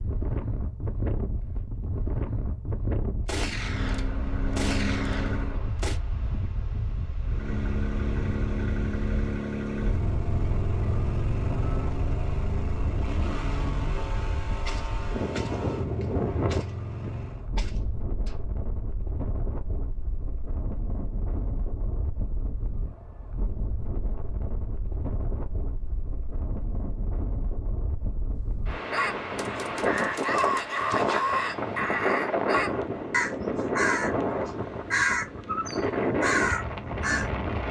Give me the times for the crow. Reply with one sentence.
You can hear the crow from 28.7 to 37.3 s.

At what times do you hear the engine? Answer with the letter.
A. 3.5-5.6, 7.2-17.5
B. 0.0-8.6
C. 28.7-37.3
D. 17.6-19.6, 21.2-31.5
A.